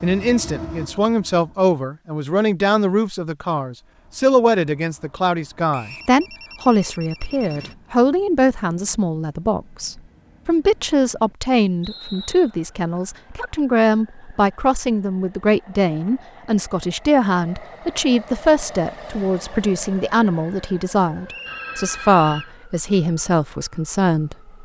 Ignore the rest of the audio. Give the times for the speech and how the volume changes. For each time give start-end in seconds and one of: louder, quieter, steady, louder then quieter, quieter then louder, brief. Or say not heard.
0.0-24.4 steady.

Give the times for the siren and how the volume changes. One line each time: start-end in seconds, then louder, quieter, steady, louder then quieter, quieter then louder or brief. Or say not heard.
not heard.